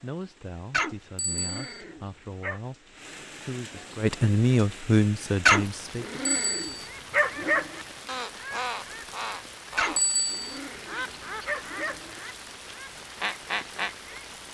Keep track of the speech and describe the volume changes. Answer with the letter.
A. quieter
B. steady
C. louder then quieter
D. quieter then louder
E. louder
E.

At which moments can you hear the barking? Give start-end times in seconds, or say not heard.
0.7-2.6, 5.5-7.8, 9.8-12.2.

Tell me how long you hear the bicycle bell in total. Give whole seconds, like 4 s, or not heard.
2 s.